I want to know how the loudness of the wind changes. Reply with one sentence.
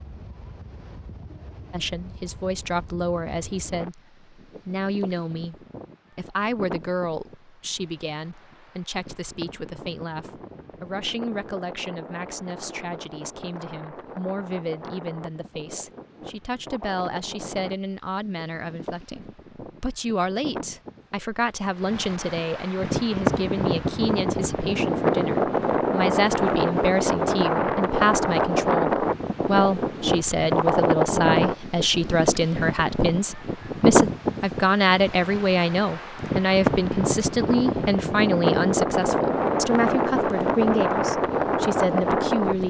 The loudness of the wind goes up.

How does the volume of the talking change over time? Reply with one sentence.
The volume of the talking goes up.